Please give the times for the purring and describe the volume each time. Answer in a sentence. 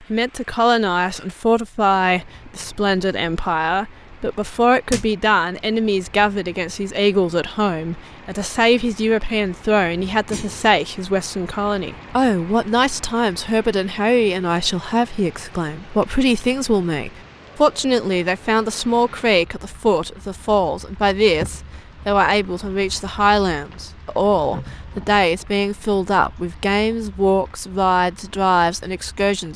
You can't hear the purring here.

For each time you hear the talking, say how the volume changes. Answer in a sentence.
You can hear the talking from 0.1 to 29.5 s, at a steady volume.